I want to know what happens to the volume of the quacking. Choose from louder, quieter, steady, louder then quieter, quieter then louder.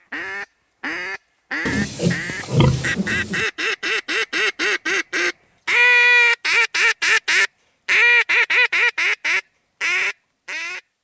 louder.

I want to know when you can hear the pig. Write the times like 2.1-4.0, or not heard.
1.6-3.5.